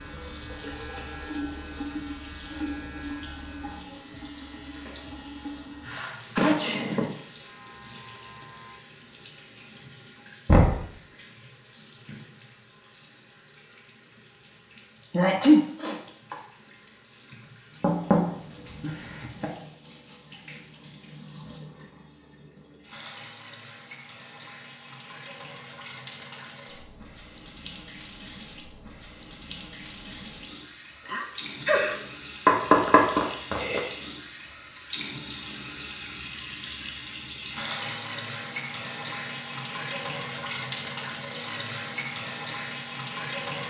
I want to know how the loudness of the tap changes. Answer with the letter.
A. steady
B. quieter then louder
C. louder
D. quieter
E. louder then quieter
B.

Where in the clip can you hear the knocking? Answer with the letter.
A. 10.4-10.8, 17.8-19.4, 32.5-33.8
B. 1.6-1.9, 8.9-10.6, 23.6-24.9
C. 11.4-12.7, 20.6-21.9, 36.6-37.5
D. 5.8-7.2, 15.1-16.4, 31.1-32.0
A.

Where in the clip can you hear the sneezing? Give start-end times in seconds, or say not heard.
5.8-7.2, 15.1-16.4, 31.1-32.0.